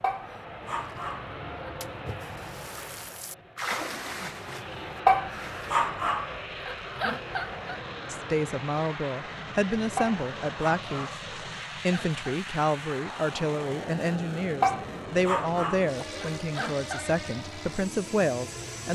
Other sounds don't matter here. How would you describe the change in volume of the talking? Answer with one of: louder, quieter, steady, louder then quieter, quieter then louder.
steady.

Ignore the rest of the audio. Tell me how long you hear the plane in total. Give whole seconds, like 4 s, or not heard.
19 s.